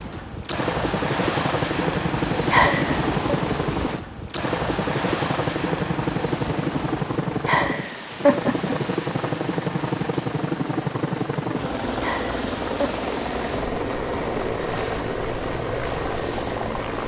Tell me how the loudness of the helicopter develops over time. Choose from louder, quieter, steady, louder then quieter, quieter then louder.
steady.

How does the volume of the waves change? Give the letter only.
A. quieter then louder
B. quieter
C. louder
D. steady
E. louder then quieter
B.